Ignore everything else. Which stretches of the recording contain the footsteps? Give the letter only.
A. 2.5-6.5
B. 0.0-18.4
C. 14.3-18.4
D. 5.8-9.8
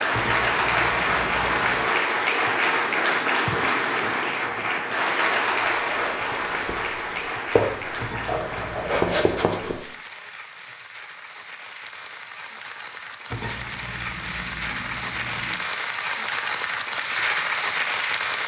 D.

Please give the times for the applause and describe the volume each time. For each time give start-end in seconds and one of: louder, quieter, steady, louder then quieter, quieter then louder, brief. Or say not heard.
0.0-18.4 quieter then louder.